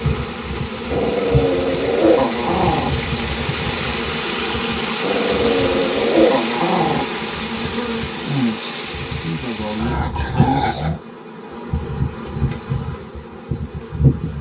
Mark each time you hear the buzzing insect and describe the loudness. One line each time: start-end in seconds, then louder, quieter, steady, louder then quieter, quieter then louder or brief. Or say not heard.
0.0-14.3 steady.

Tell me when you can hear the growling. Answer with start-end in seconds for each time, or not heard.
0.9-2.9, 5.0-7.0, 9.8-11.0.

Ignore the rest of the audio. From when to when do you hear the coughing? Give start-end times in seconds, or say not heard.
not heard.